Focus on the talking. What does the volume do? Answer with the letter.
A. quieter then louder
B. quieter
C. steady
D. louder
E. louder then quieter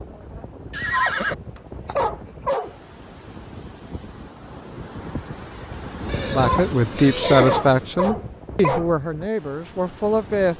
B.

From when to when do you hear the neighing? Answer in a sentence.
The neighing can be heard from 0.7 to 1.4 s and from 6.0 to 7.8 s.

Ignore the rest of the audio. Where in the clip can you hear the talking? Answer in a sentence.
The talking can be heard from 6.3 to 10.5 s.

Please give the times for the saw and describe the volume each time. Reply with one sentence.
You can't hear the saw here.